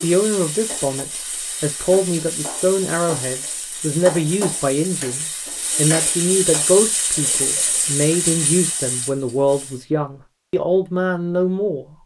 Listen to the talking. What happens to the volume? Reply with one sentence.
The volume of the talking stays about the same.